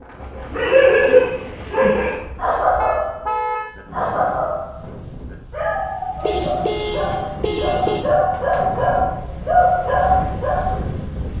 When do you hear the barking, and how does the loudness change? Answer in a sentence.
You can hear the barking from 0.5 to 10.8 s, getting quieter then louder.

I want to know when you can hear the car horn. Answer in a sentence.
The car horn can be heard from 2.8 to 3.8 s and from 6.2 to 8.0 s.